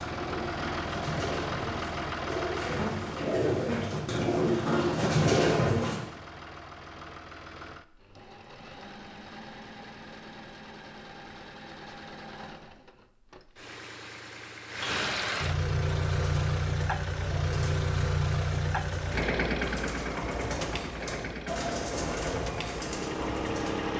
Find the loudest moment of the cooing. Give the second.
5 s.